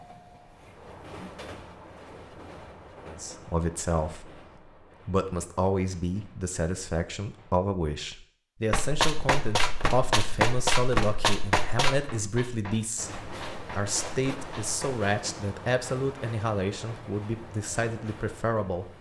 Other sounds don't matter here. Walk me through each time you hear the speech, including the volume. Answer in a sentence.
The speech can be heard briefly from 3.0 to 4.4 s; and from 5.0 to 18.9 s, at a steady volume.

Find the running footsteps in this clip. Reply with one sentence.
You can hear the running footsteps from 8.7 to 15.0 s.